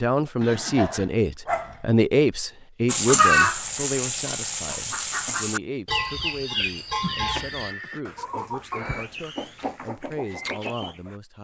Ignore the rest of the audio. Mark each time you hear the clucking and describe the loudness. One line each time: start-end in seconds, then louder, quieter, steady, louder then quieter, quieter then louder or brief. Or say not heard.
2.9-11.2 quieter.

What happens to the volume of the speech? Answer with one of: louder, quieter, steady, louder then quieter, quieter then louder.
quieter.